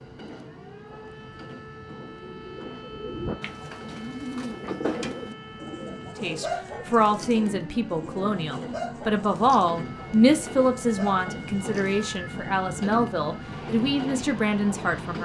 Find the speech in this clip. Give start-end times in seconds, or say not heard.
6.2-15.2.